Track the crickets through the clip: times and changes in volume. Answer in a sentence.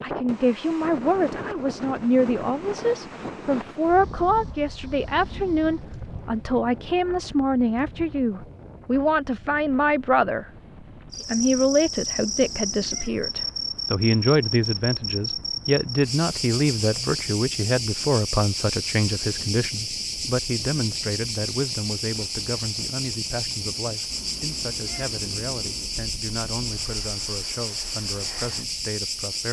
The crickets can be heard from 11.1 to 29.4 s, at a steady volume.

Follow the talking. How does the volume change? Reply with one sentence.
The loudness of the talking goes down.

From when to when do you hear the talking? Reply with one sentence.
The talking can be heard from 0.0 to 10.4 s and from 11.2 to 29.4 s.